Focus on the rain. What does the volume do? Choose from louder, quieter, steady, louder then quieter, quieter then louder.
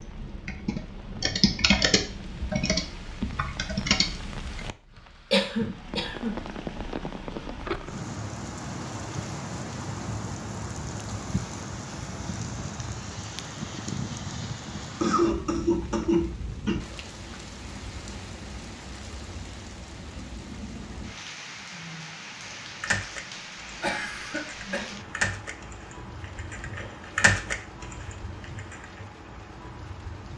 louder then quieter.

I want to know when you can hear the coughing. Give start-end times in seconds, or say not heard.
5.3-6.3, 14.7-16.8, 23.8-24.9.